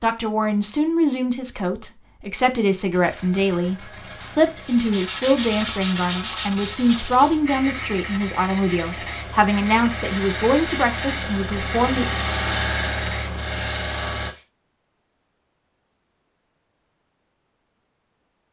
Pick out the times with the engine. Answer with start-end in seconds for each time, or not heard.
2.9-14.3.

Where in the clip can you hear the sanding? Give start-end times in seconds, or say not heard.
4.6-14.4.